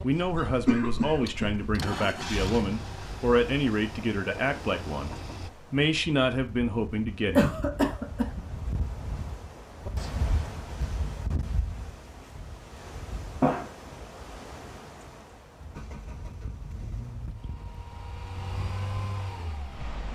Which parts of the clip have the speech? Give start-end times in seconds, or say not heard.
0.0-7.7.